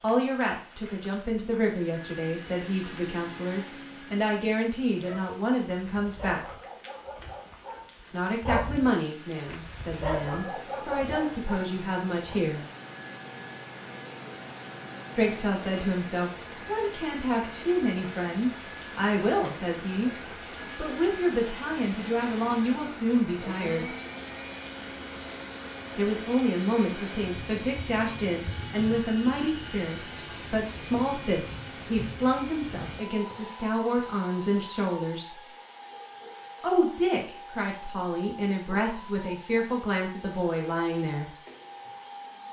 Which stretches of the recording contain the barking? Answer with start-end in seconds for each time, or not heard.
4.8-12.4.